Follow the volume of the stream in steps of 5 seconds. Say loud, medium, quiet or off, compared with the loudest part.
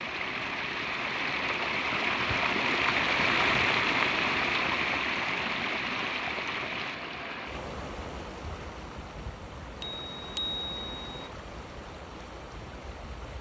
loud, medium, quiet.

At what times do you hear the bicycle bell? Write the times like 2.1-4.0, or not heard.
9.8-11.3.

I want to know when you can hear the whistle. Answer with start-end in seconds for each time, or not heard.
not heard.